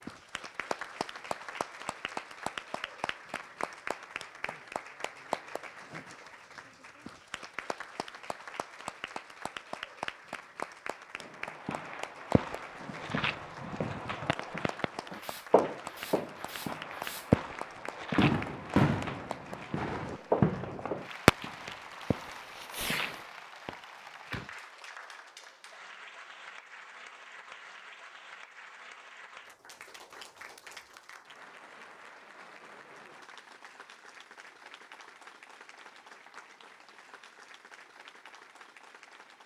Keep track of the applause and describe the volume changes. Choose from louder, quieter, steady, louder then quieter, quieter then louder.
quieter.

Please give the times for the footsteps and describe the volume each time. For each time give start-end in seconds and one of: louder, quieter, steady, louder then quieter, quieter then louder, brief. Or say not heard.
11.6-23.2 louder then quieter.